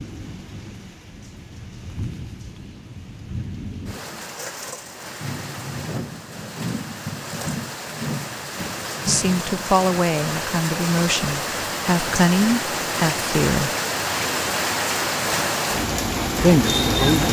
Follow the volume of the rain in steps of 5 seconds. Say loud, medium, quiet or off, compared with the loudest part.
quiet, medium, loud, loud.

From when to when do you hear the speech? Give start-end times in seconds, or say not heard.
9.1-13.7, 16.4-17.2.